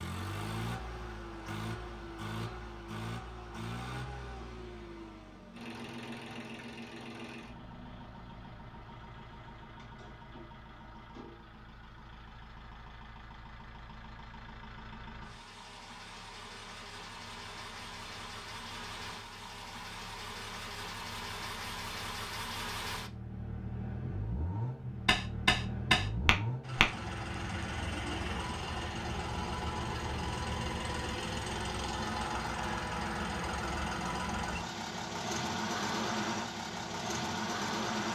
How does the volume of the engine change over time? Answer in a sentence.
The loudness of the engine goes down, then up.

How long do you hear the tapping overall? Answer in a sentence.
The tapping can be heard for 2 seconds in total.